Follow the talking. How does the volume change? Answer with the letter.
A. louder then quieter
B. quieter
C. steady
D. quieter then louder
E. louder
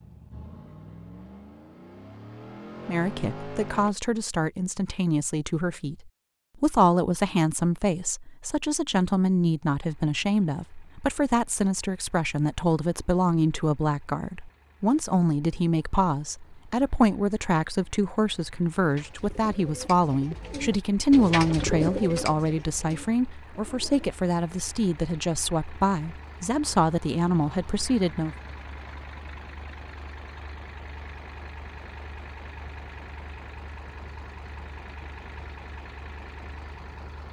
C.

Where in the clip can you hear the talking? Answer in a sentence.
You can hear the talking from 2.9 to 28.4 s.